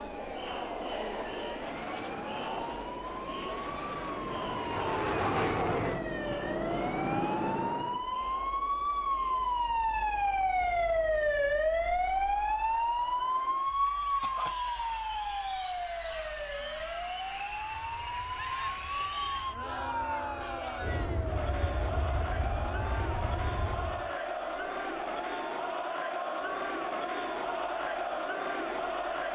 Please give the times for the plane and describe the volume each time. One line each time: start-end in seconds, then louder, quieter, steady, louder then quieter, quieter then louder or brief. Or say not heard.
1.4-8.1 louder
17.6-24.1 louder.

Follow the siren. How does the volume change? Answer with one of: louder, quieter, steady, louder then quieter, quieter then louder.
louder then quieter.